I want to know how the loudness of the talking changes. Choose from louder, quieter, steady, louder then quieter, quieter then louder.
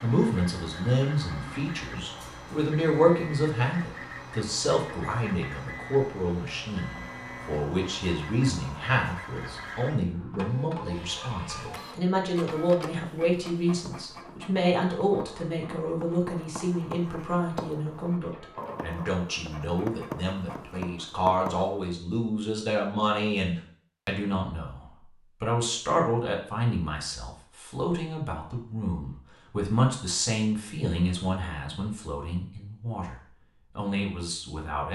steady.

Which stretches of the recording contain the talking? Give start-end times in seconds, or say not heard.
0.0-34.8.